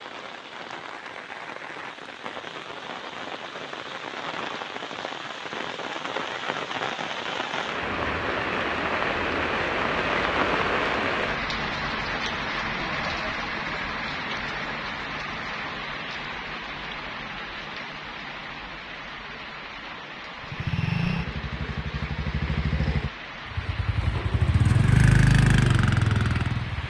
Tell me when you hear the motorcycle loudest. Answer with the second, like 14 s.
25 s.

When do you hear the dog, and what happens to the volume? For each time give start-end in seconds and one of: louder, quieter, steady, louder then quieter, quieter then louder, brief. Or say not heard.
not heard.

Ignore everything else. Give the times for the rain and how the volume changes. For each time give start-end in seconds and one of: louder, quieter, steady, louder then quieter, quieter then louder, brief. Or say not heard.
0.0-26.8 louder then quieter.